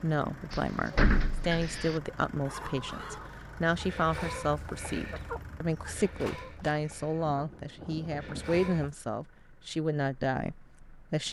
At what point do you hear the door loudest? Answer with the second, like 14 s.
1 s.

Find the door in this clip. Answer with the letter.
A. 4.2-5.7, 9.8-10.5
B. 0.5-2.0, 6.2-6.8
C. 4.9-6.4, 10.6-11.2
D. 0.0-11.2
B.